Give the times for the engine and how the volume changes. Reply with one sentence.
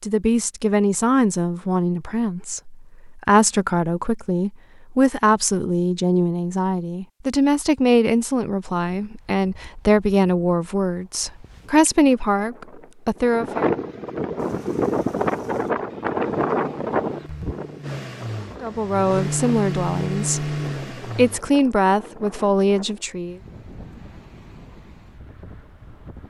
You can hear the engine from 14.3 to 21.4 s, getting louder.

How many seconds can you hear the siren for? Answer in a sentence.
You can't hear the siren here.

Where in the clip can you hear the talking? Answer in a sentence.
The talking can be heard from 0.0 to 13.7 s and from 18.6 to 23.4 s.